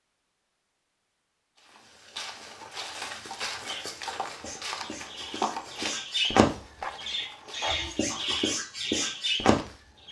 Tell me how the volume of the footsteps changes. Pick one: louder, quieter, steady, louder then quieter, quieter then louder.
quieter.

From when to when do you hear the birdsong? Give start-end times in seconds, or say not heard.
3.6-10.0.